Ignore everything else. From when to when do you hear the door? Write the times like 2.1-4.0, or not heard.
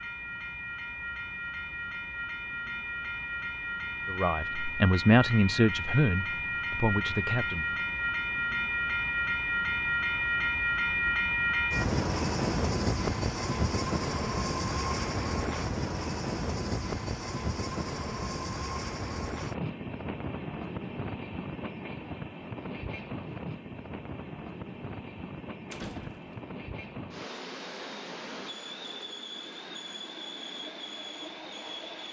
25.7-26.4.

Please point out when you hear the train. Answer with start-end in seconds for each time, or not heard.
0.0-32.0.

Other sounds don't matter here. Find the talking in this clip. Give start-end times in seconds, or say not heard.
4.1-7.7.